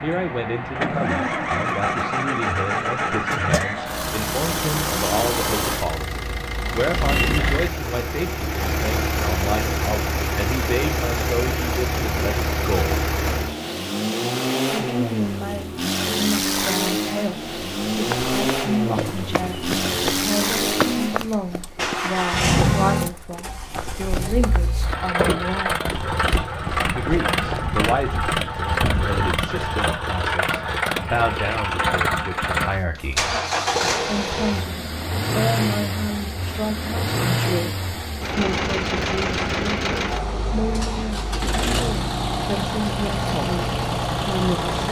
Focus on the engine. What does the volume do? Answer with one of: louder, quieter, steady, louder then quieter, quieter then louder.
steady.